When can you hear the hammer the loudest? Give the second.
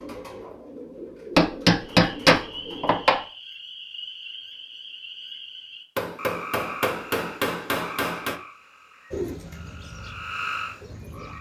2 s.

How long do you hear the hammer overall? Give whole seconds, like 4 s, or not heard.
4 s.